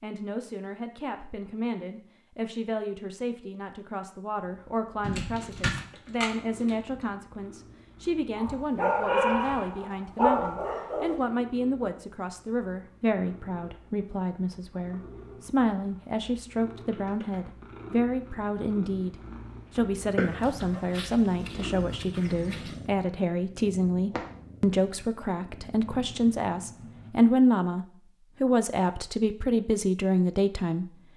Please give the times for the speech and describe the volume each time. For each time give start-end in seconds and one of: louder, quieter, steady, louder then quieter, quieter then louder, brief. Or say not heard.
0.0-30.9 louder.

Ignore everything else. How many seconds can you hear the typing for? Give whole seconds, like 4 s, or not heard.
2 s.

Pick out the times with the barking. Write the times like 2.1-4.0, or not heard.
8.3-11.2, 20.1-22.9.